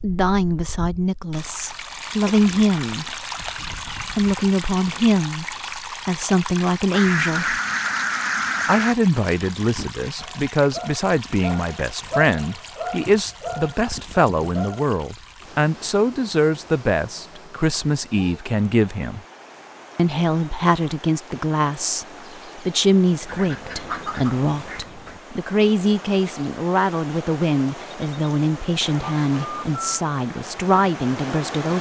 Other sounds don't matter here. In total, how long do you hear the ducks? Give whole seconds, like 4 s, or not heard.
4 s.